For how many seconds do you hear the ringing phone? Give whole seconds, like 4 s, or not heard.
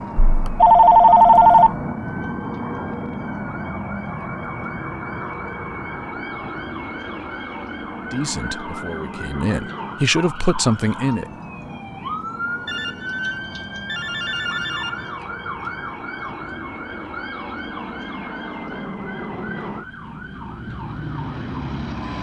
4 s.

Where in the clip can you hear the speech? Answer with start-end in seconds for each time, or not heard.
8.1-11.3.